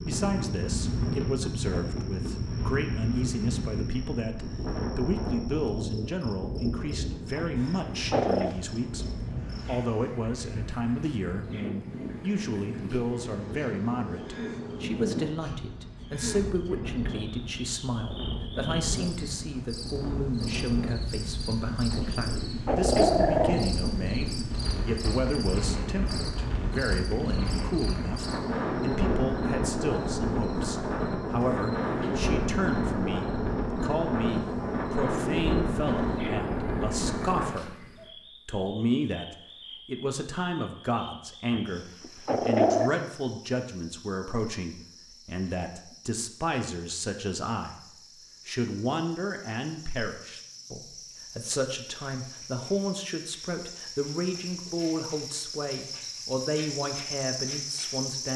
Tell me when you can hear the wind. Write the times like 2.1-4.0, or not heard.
0.0-37.5.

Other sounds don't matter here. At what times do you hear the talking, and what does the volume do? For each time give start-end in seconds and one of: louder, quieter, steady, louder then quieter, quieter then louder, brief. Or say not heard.
0.0-58.3 steady.